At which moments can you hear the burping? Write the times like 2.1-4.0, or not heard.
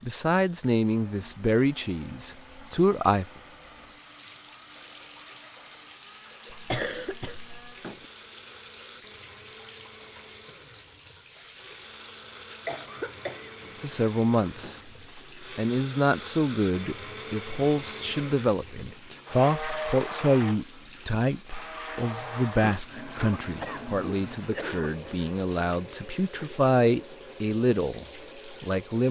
not heard.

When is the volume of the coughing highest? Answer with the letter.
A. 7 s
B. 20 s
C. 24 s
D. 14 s
A.